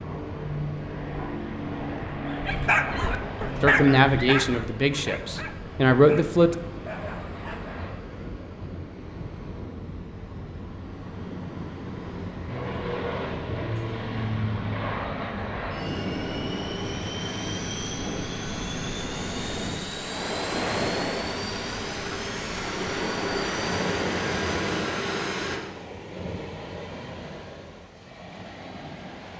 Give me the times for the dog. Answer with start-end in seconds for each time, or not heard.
2.2-7.8.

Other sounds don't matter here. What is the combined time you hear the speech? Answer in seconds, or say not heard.
3 s.